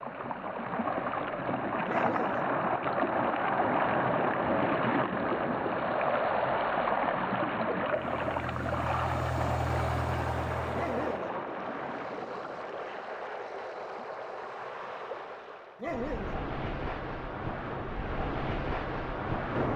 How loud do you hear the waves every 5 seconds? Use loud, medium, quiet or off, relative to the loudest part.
loud, loud, medium, medium.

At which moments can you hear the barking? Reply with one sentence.
The barking can be heard from 1.9 to 2.5 s, from 10.7 to 11.3 s and from 15.8 to 16.4 s.